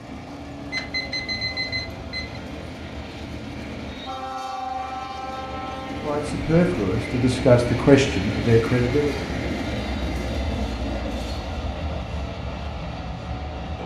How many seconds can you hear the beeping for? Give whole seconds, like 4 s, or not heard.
2 s.